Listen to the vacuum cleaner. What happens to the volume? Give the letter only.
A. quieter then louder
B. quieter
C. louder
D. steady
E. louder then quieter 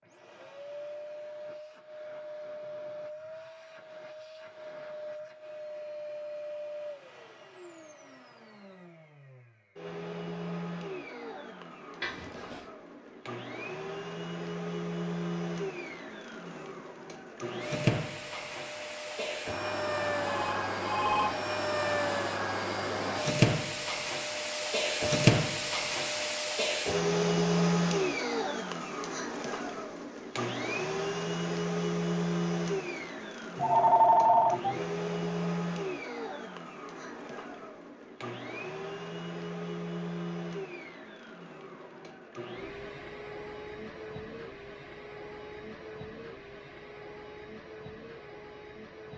E.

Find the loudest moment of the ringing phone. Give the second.
34 s.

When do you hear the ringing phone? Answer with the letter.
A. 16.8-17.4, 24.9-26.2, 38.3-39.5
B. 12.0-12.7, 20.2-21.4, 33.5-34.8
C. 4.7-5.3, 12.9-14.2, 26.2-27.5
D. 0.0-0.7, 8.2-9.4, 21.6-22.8
B.